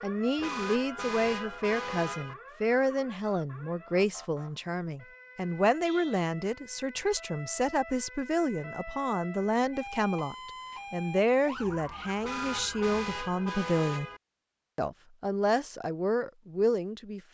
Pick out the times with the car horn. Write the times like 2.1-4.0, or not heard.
0.3-2.4, 5.8-6.2, 12.2-14.2.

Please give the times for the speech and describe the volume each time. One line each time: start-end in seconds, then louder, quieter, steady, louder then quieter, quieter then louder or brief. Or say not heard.
0.0-14.1 steady
14.8-17.3 brief.